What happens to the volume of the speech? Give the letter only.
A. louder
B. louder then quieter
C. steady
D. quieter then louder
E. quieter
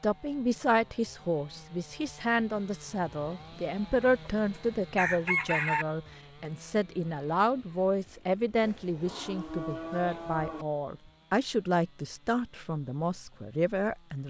C.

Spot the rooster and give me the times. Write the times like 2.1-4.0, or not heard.
4.0-5.8.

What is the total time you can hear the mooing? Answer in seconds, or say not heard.
2 s.